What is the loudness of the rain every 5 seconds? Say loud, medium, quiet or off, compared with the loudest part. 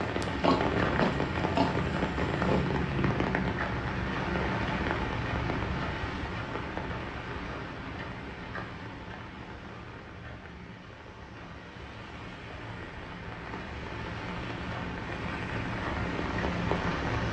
loud, medium, medium, loud.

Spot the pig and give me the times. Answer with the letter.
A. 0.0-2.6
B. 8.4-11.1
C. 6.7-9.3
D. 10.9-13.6
A.